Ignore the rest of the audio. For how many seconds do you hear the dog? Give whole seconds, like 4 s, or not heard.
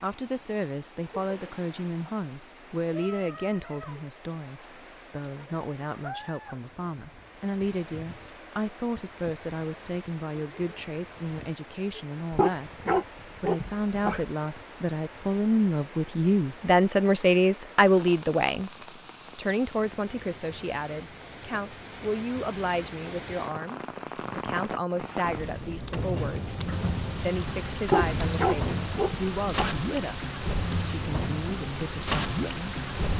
4 s.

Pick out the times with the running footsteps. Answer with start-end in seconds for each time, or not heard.
not heard.